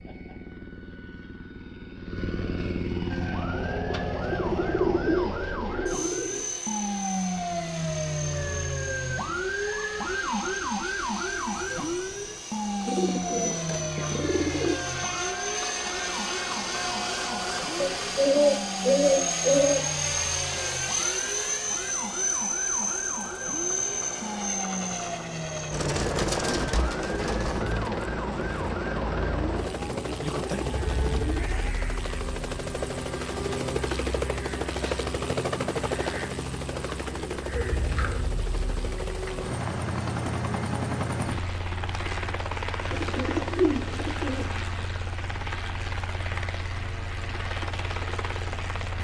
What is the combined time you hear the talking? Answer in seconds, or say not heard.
not heard.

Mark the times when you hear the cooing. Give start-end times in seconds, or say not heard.
3.9-6.5, 12.8-14.8, 17.8-19.9, 25.7-27.6, 36.6-38.2, 42.9-44.5.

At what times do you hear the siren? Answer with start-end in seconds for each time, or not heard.
3.1-31.8.